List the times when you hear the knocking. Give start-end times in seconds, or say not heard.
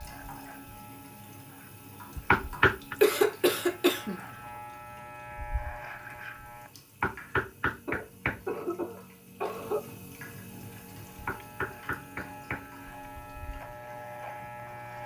2.3-3.0, 7.0-8.4, 11.2-12.7.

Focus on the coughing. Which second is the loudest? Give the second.
3 s.